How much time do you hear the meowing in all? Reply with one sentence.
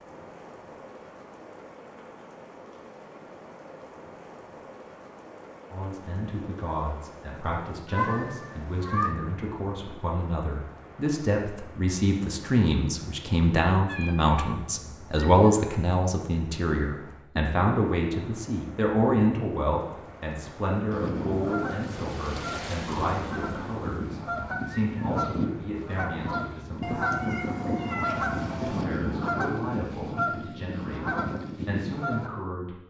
The meowing can be heard for 4 seconds in total.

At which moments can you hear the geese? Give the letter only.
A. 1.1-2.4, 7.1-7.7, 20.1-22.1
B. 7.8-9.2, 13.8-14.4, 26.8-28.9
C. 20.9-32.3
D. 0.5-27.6
C.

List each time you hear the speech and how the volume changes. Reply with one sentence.
The speech can be heard from 5.7 to 32.8 s, getting louder then quieter.